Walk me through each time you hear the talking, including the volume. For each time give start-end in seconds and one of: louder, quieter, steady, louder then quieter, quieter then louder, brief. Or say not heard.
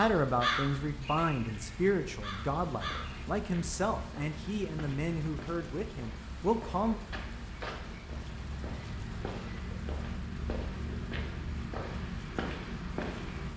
0.0-7.0 steady.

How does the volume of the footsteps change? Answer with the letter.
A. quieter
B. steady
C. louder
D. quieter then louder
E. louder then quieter
C.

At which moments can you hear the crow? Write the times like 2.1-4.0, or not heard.
0.0-3.2.